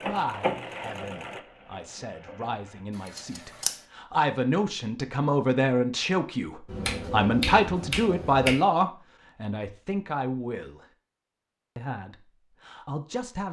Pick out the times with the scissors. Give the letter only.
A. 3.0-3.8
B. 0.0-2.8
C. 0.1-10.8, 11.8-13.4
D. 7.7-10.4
A.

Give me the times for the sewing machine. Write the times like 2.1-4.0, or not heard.
0.0-2.8.